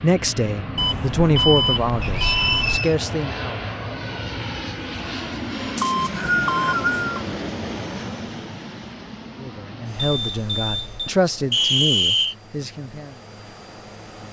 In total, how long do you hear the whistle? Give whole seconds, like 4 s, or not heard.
3 s.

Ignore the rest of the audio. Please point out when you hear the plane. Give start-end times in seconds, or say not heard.
0.0-14.2.